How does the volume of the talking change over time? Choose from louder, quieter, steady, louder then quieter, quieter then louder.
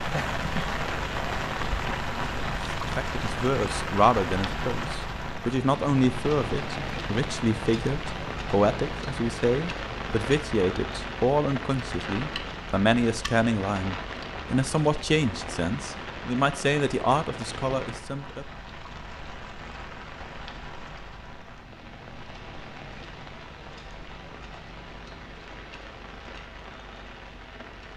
steady.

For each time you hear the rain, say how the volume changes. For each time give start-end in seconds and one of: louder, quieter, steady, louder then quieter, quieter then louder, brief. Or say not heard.
0.0-27.9 quieter.